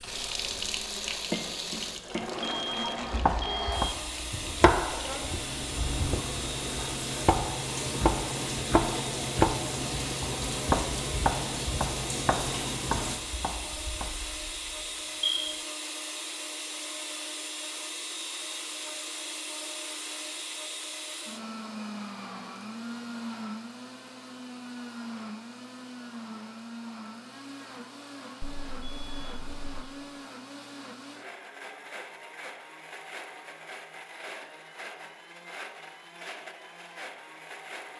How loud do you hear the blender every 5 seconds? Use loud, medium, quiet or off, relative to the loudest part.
loud, loud, loud, loud, loud, medium, medium, medium.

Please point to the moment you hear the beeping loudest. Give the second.
15 s.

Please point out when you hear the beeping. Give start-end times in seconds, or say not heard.
2.4-3.9, 13.7-15.7, 28.4-29.9.